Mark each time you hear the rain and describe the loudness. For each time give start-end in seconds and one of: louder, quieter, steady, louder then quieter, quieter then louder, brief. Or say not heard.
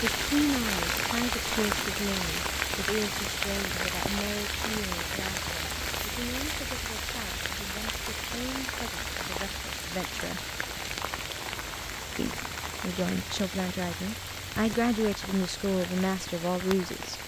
0.0-17.2 quieter.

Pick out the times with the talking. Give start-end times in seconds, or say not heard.
0.0-10.5, 12.2-17.2.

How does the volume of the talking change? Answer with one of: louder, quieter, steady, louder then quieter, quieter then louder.
quieter then louder.